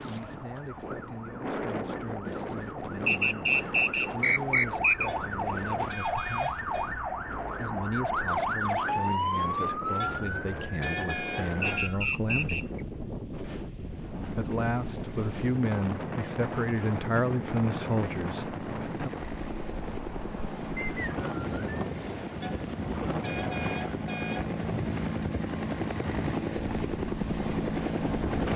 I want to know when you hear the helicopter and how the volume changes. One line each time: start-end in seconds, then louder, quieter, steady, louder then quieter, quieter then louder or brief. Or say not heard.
13.8-28.5 louder.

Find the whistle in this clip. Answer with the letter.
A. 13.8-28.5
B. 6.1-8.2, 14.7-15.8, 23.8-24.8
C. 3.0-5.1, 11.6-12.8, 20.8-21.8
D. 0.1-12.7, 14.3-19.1
C.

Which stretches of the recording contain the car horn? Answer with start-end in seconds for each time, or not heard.
5.0-6.9, 10.0-11.9, 22.4-24.6.